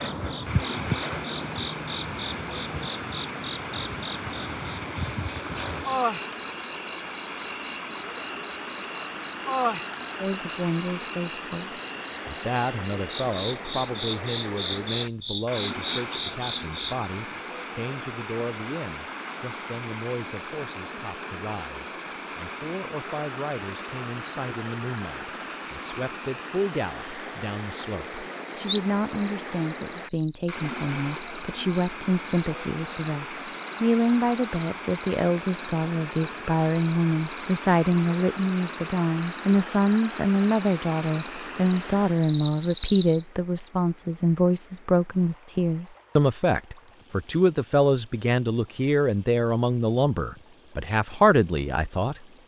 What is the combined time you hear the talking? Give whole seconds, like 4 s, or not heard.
42 s.